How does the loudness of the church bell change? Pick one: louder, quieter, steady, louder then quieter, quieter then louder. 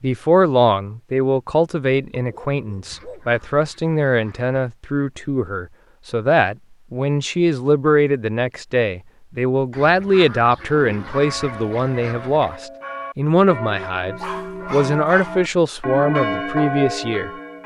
louder.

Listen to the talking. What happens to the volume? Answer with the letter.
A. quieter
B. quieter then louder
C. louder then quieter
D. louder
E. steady
E.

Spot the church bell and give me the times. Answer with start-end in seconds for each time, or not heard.
10.8-17.6.